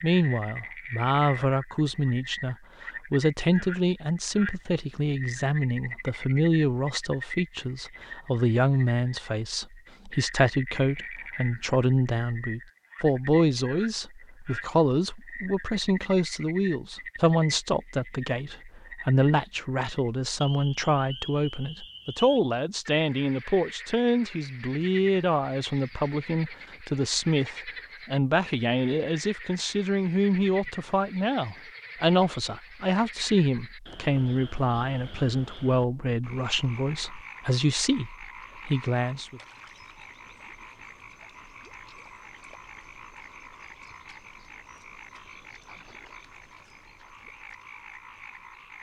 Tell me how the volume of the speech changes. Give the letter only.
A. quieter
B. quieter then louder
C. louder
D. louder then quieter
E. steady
E.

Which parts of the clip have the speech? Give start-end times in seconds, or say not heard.
0.0-39.4.